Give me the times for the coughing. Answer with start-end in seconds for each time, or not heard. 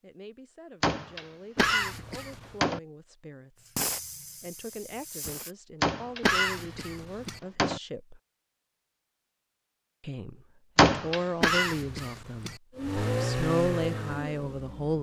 1.6-2.6, 6.2-7.4, 11.4-12.6.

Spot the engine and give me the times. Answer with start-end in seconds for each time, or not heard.
12.8-14.9.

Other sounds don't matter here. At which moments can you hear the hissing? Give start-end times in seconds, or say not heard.
3.8-5.5.